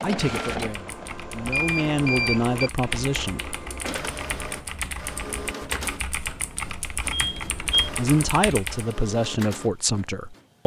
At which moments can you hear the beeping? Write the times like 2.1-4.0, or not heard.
1.4-2.5, 7.1-7.9.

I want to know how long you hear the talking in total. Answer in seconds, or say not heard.
6 s.